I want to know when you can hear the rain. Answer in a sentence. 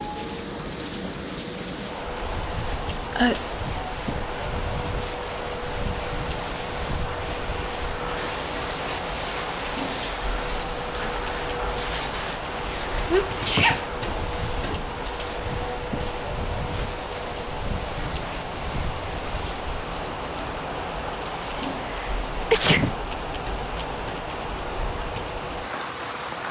You can hear the rain from 0.0 to 26.4 s.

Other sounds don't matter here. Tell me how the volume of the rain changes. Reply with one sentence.
The volume of the rain stays about the same.